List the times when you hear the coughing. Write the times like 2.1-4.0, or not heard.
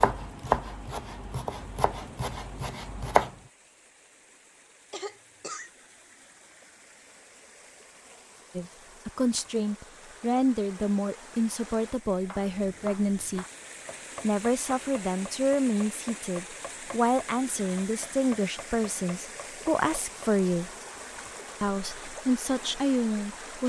4.9-5.7.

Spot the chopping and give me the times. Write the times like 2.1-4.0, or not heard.
0.0-3.4, 12.2-20.3.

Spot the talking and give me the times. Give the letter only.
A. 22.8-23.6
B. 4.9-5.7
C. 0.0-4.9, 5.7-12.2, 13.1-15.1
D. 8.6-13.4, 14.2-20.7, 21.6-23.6
D.